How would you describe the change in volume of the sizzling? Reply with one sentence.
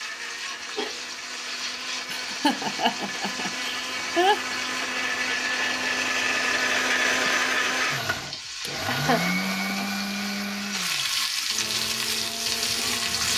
The volume of the sizzling goes up.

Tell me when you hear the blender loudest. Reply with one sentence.
The volume of the blender peaks at 7 seconds.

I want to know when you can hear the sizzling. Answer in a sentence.
The sizzling can be heard from 0.0 to 13.3 s.